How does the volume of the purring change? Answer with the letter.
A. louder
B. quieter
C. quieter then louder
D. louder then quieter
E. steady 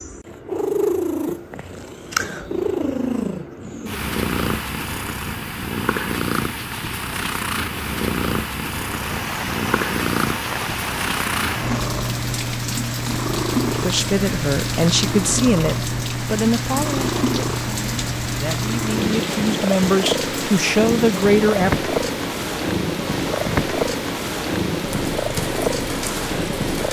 E.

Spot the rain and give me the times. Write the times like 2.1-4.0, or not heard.
8.8-26.8.